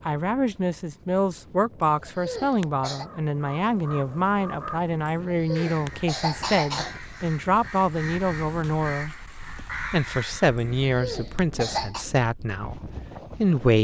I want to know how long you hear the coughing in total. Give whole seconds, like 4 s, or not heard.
5 s.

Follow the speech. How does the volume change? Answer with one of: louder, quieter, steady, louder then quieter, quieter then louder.
steady.